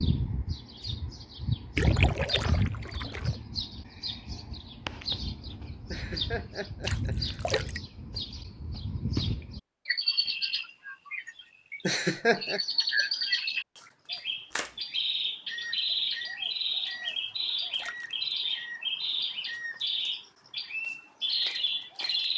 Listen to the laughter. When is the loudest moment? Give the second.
12 s.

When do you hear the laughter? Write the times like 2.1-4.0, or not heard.
5.9-7.5, 11.8-12.6.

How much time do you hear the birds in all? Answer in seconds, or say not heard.
22 s.